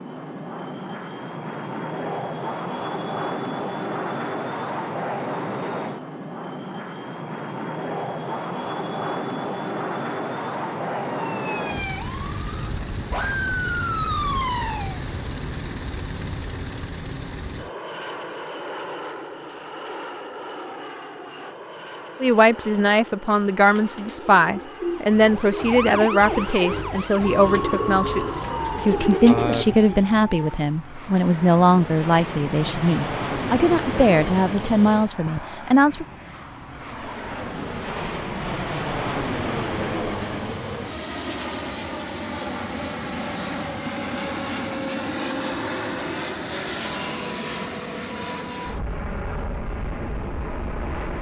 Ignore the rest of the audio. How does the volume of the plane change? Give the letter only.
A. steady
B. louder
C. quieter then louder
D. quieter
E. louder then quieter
C.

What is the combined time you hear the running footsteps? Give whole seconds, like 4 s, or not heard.
not heard.